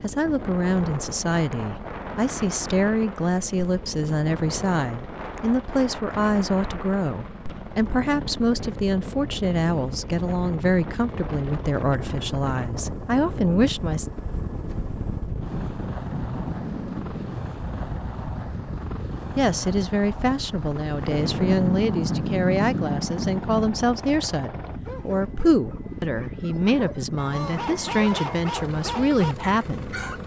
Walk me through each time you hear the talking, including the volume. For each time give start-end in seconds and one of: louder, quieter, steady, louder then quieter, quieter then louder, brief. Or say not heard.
0.0-14.1 steady
19.4-30.0 steady.